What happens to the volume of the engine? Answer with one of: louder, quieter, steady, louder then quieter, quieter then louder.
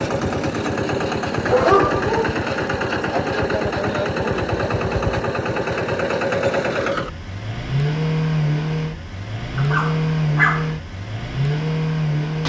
steady.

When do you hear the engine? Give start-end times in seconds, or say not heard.
0.0-12.4.